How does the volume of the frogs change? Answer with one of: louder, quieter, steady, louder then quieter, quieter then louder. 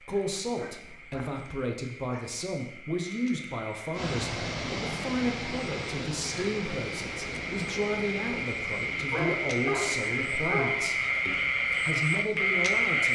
louder.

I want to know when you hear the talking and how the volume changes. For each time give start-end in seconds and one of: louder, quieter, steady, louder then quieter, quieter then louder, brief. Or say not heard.
0.0-13.1 steady.